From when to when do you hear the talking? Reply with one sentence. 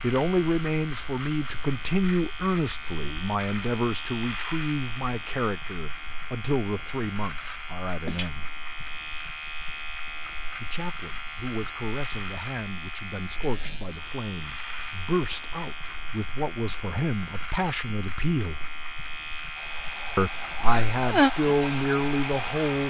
The talking can be heard from 0.0 to 8.4 s, from 10.6 to 18.6 s and from 20.1 to 22.8 s.